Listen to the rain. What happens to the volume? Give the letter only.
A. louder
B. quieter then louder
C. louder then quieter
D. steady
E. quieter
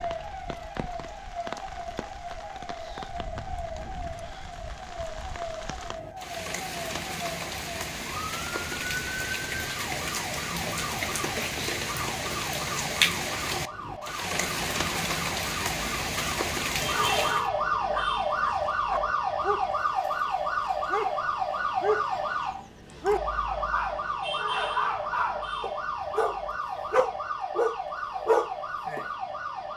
A.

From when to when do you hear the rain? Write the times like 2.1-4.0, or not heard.
0.0-17.5.